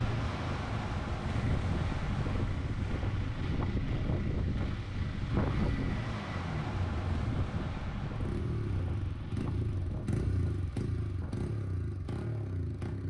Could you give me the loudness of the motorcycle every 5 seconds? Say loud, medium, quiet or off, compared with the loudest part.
medium, loud, loud.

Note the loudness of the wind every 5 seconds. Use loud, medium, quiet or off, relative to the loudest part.
loud, loud, medium.